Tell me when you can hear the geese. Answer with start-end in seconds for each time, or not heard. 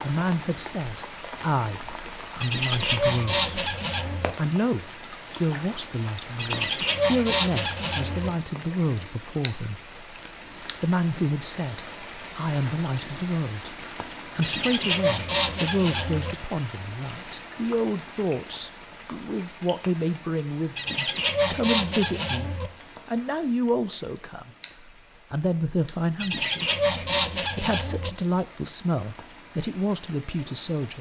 2.4-4.3, 6.3-8.3, 14.4-16.4, 20.8-22.7, 26.2-28.1.